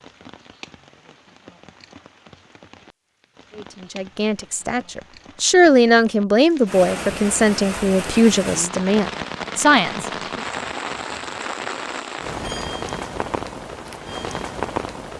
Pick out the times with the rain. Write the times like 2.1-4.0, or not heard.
0.0-15.1.